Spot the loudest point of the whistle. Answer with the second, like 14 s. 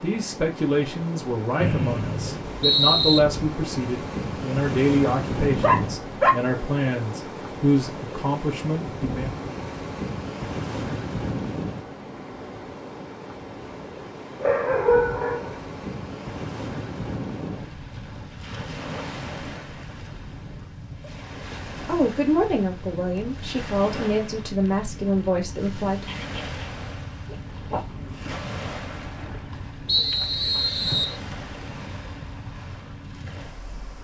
3 s.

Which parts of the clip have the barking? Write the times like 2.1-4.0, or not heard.
5.5-6.3, 14.4-15.6, 26.1-27.9.